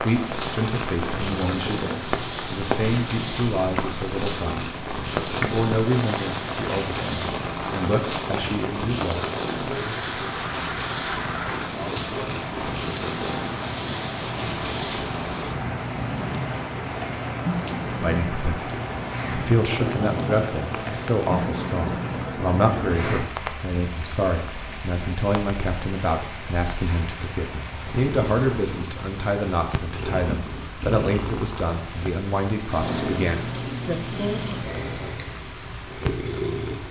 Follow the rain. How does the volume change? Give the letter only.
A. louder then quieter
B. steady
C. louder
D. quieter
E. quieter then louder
D.